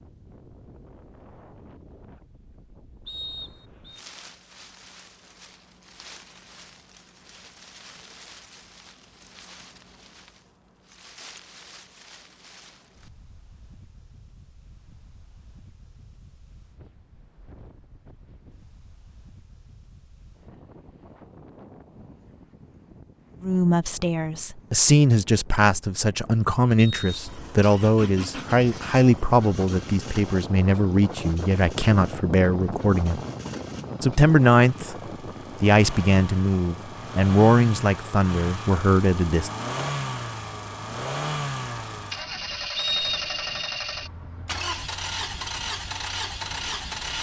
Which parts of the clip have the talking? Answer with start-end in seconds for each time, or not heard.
23.4-33.2, 34.0-35.0, 35.6-39.5.